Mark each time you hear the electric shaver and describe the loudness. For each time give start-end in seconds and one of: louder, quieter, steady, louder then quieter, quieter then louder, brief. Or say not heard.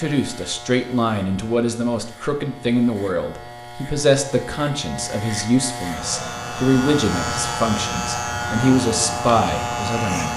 0.0-10.3 louder.